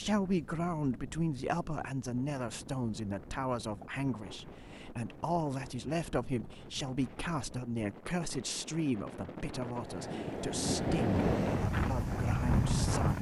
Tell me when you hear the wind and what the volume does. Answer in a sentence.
You can hear the wind from 0.0 to 13.1 s, getting louder.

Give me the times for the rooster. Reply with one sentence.
The rooster can't be heard in this clip.